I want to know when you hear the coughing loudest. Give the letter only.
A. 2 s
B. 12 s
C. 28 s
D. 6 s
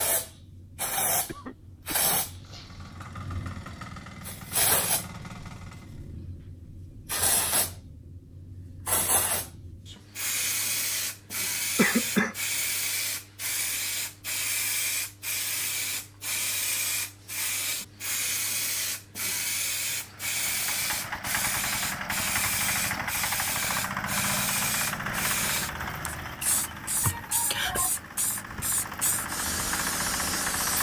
B.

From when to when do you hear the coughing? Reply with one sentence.
The coughing can be heard from 1.2 to 3.0 s, from 11.8 to 12.3 s and from 27.0 to 27.9 s.